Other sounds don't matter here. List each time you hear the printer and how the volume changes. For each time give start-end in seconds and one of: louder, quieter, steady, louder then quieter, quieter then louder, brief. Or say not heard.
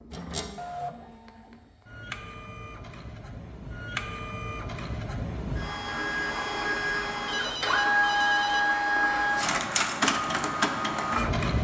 0.0-11.5 louder.